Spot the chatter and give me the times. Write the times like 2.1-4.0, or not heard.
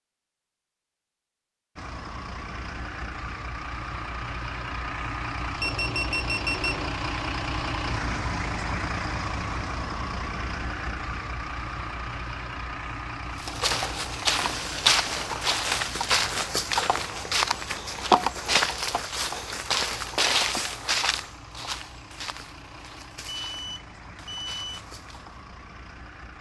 not heard.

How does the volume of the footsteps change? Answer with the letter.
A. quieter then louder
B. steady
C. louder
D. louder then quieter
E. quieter
E.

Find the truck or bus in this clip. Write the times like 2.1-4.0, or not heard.
1.8-26.3.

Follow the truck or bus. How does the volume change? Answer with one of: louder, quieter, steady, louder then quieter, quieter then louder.
quieter.